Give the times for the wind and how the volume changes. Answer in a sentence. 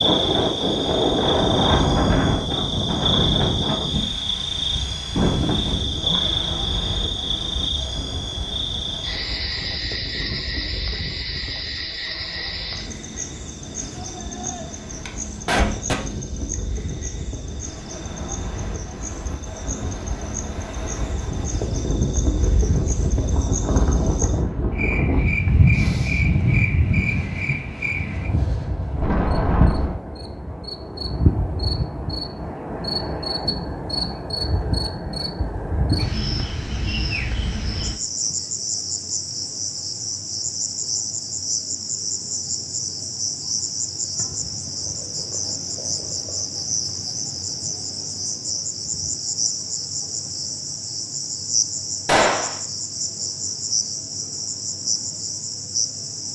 You can hear the wind from 0.0 to 30.0 s, getting quieter then louder.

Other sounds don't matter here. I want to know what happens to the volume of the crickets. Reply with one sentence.
The loudness of the crickets goes down, then up.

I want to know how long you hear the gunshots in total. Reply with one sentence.
The gunshots can be heard for 2 seconds in total.